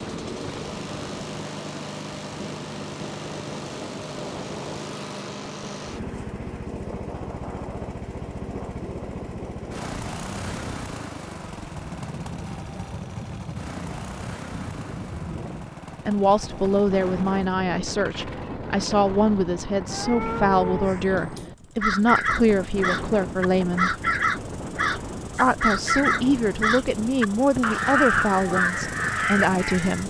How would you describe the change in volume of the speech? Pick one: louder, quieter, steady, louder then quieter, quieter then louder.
steady.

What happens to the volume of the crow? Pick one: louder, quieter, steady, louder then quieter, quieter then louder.
steady.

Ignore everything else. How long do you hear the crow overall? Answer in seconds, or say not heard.
9 s.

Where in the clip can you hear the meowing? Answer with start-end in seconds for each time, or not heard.
19.9-20.9.